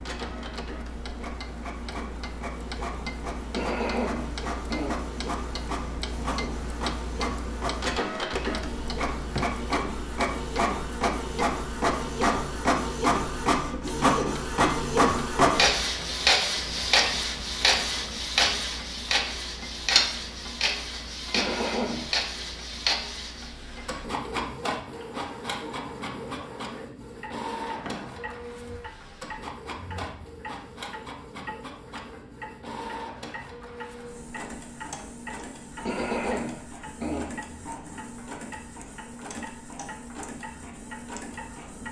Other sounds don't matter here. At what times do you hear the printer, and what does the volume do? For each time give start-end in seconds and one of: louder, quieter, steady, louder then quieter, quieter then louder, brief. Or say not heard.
0.0-41.8 louder then quieter.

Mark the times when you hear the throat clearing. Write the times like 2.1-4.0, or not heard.
3.5-5.0, 21.3-22.1, 35.9-37.3.